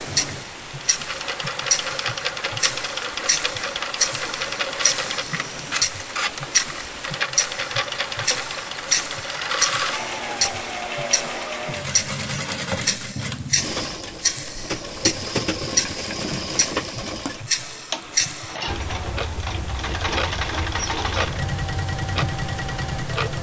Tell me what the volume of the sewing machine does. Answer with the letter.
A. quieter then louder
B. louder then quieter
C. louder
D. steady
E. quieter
D.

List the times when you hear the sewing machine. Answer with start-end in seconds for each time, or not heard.
0.0-23.3.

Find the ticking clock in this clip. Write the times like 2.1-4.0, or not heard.
0.0-23.3.